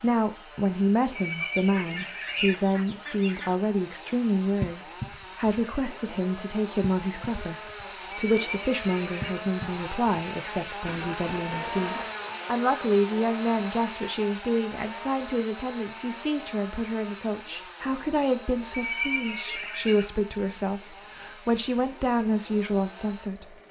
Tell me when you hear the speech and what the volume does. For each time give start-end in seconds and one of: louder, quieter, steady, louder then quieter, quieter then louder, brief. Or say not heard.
0.0-23.6 steady.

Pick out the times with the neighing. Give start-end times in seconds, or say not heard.
1.1-2.5, 8.1-9.4, 18.7-20.1.